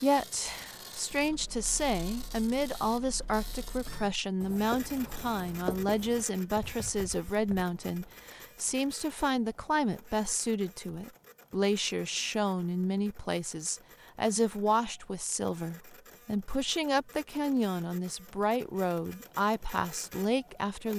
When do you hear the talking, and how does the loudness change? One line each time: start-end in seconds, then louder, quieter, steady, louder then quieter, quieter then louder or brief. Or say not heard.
0.0-20.9 steady.